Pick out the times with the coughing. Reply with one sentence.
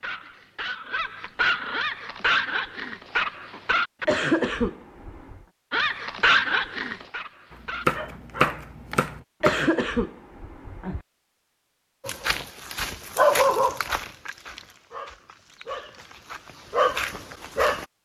You can hear the coughing from 4.0 to 5.4 s and from 9.4 to 11.0 s.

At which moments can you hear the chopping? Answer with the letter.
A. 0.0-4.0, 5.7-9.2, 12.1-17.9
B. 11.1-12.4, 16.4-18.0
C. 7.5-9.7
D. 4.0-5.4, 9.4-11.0
C.